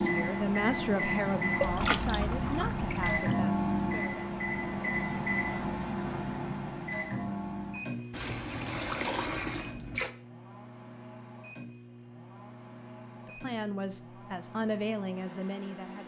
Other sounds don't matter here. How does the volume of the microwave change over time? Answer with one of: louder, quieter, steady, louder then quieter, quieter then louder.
quieter.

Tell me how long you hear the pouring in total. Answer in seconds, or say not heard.
4 s.